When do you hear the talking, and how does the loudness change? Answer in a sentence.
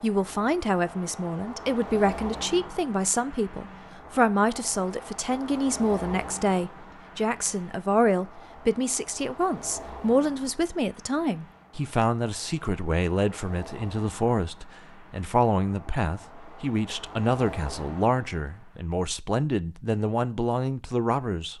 You can hear the talking from 0.0 to 21.5 s, at a steady volume.